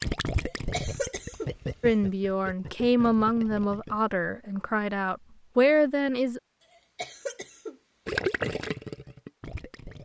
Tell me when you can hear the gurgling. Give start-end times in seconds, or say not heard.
0.0-4.0, 8.1-9.9.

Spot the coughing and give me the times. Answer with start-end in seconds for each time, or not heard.
0.3-1.5, 6.6-7.8.